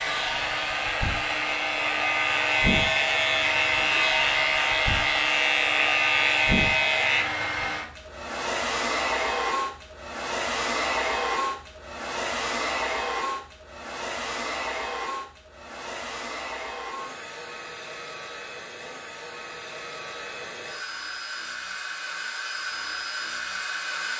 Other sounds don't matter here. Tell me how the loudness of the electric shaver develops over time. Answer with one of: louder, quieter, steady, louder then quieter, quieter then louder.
louder.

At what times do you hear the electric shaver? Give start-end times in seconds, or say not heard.
0.1-7.2.